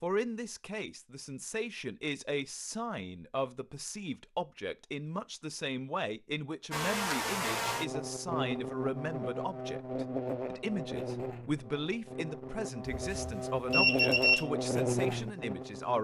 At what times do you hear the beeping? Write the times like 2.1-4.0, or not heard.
12.9-14.4.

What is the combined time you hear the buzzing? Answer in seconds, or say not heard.
9 s.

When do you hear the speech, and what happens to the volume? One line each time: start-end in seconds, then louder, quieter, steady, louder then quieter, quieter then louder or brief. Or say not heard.
0.0-15.9 steady.